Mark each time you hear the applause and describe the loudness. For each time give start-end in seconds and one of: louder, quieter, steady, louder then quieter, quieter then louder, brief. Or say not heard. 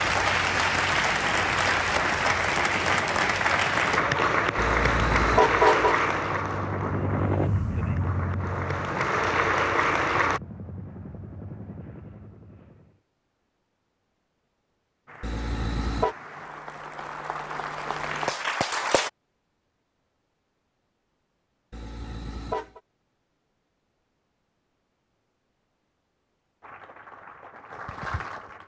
0.0-10.4 quieter then louder
15.1-19.1 louder
26.6-28.6 brief.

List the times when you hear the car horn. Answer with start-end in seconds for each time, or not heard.
4.5-6.0, 15.2-16.1, 21.7-22.8.